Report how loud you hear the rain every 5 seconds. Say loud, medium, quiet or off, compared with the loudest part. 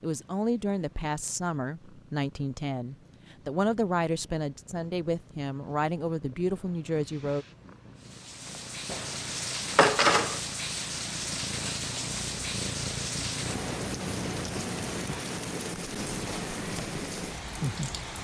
off, loud, loud, loud.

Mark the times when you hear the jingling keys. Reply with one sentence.
The jingling keys can be heard from 8.9 to 10.4 s.